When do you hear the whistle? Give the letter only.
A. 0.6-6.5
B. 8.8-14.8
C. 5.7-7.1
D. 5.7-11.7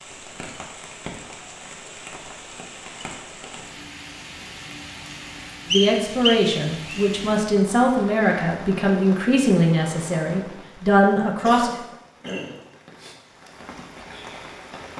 C.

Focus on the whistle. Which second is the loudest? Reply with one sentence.
The volume of the whistle peaks at 6 seconds.